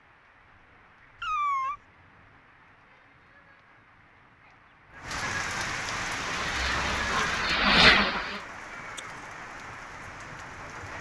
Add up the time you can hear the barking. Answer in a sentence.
The barking can't be heard in this clip.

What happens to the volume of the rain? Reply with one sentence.
The volume of the rain goes up, then down.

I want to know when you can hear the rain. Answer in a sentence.
The rain can be heard from 0.0 to 10.9 s.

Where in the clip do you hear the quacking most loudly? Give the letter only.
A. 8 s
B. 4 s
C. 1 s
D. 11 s
A.